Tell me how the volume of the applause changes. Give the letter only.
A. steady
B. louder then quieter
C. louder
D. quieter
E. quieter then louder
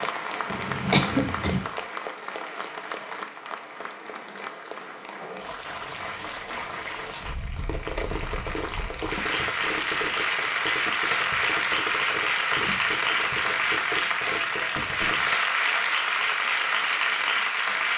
C.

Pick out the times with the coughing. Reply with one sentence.
The coughing can be heard from 0.9 to 1.6 s.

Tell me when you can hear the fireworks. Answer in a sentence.
The fireworks can be heard from 0.0 to 1.6 s and from 7.5 to 15.3 s.